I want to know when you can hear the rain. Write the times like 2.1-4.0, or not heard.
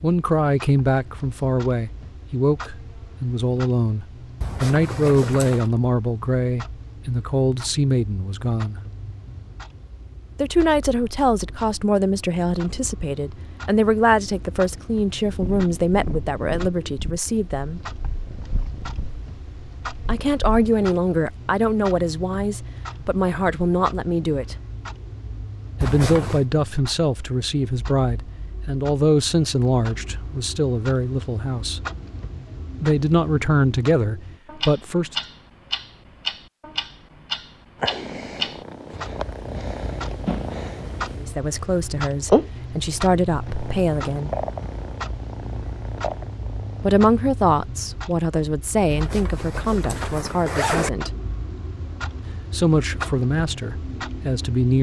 not heard.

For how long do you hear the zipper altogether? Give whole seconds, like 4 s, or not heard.
4 s.